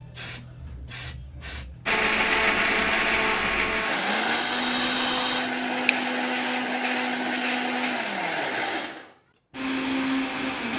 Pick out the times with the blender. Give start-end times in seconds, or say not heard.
1.9-10.7.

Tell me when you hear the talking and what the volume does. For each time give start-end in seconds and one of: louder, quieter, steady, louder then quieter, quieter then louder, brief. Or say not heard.
not heard.